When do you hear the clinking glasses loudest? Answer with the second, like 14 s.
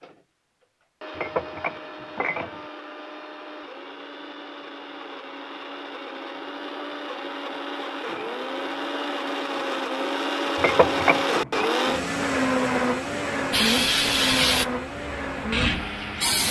11 s.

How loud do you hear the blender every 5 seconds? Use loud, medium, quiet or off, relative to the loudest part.
quiet, medium, loud, medium.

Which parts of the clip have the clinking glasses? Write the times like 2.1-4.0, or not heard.
1.1-2.6, 10.6-11.7.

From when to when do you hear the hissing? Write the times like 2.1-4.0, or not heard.
13.5-16.4.